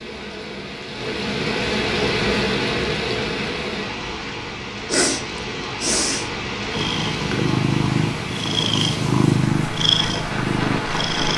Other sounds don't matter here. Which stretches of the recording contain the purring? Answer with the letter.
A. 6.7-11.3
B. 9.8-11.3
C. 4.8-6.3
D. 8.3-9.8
A.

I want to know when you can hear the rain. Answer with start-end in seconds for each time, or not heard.
0.0-11.3.